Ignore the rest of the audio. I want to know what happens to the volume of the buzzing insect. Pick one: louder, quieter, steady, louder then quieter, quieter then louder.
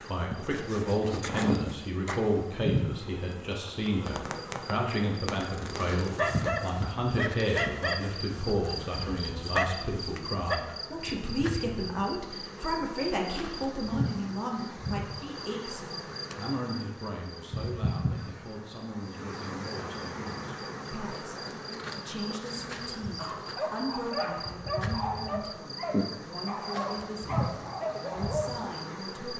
steady.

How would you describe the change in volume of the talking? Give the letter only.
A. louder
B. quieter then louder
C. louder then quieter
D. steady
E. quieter
E.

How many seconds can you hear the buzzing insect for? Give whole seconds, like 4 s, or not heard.
29 s.